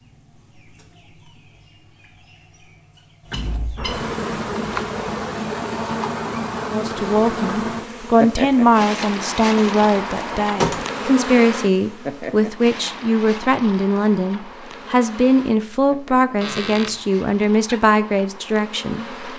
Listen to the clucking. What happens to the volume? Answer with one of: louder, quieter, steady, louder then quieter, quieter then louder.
louder.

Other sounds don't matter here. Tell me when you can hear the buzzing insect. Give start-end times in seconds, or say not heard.
3.8-19.3.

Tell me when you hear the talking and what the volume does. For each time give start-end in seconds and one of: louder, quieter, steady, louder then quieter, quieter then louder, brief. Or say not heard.
6.7-19.1 steady.